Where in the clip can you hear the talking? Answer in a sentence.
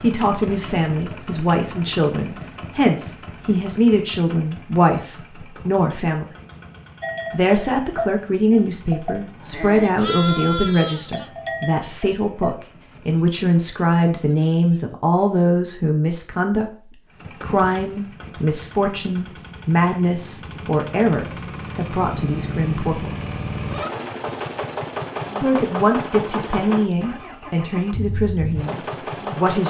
You can hear the talking from 0.0 to 6.2 s, from 7.3 to 23.3 s and from 25.4 to 29.6 s.